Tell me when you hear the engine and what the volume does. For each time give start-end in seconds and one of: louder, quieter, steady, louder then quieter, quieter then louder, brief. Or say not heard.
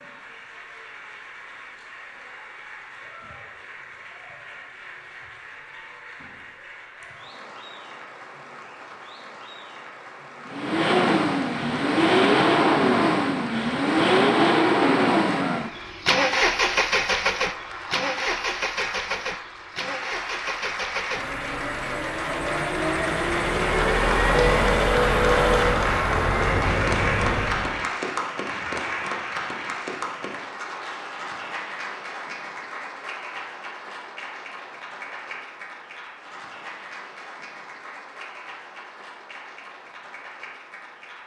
10.4-27.9 quieter then louder.